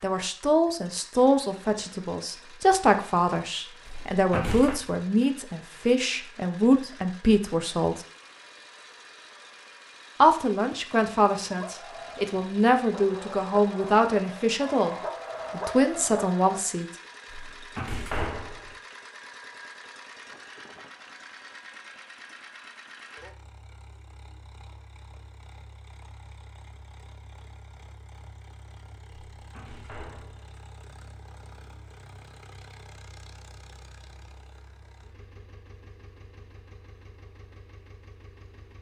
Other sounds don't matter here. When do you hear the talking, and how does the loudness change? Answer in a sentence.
You can hear the talking from 0.0 to 8.1 s, at a steady volume; and from 10.2 to 16.9 s, at a steady volume.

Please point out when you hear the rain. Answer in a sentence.
You can't hear the rain here.